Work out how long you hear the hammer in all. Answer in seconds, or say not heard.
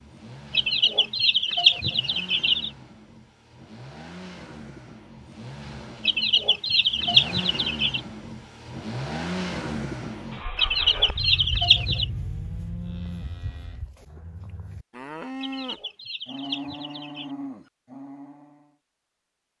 not heard.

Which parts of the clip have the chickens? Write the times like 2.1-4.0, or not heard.
0.5-2.7, 6.0-8.0, 10.6-12.1, 15.4-17.3.